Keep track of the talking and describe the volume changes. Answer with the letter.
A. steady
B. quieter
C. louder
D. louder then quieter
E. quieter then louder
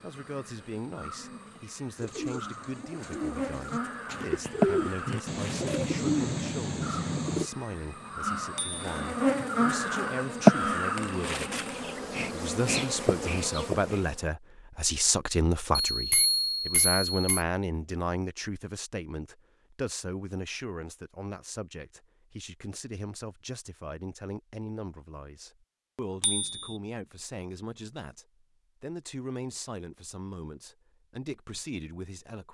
D.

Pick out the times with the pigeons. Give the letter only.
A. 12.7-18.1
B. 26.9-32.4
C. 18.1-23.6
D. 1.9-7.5
D.